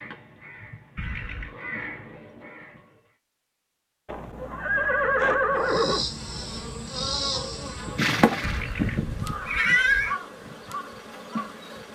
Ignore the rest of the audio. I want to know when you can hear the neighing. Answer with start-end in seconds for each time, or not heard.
0.9-1.6, 4.0-6.0, 8.4-10.2.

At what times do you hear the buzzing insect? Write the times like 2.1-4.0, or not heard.
5.6-11.9.